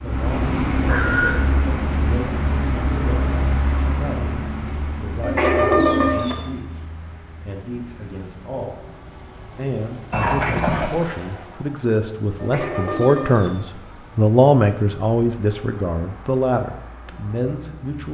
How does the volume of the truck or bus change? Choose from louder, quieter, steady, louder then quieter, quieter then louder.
quieter.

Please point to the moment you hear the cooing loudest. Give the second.
6 s.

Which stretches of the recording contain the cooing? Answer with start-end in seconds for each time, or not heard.
5.2-6.3, 12.3-13.5.